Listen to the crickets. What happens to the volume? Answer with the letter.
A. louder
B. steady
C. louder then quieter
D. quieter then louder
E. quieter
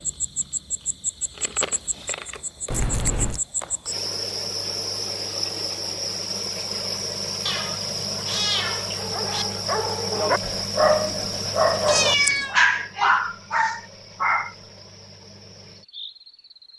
E.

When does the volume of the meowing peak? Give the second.
12 s.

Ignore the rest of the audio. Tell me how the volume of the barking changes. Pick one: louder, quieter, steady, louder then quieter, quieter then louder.
louder.